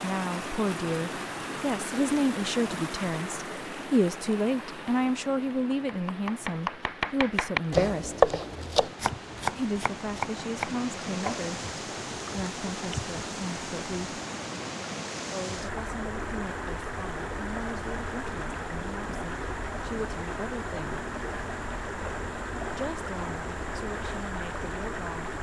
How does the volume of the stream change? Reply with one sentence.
The loudness of the stream goes down, then up.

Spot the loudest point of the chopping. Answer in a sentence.
The volume of the chopping peaks at 8 seconds.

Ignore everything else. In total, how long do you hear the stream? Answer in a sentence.
The stream can be heard for 25 seconds in total.